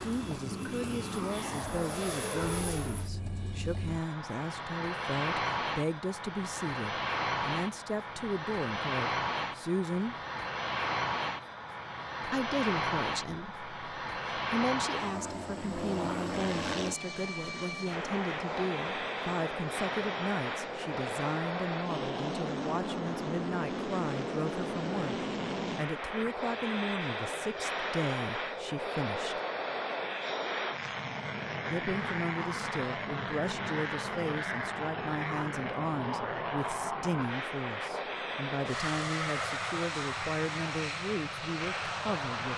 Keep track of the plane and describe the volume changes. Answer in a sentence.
The loudness of the plane stays about the same.